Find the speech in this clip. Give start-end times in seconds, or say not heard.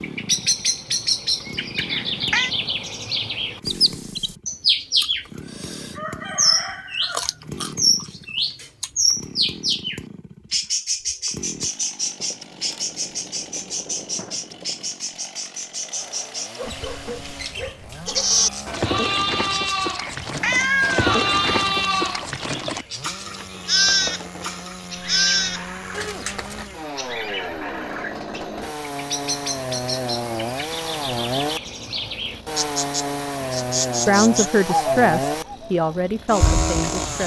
34.0-37.2.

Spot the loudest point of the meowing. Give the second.
21 s.